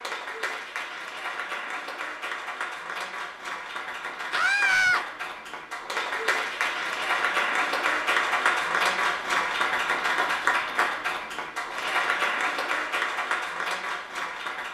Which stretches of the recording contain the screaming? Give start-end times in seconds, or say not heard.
4.3-5.0.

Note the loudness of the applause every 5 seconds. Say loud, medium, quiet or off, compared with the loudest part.
medium, loud, loud.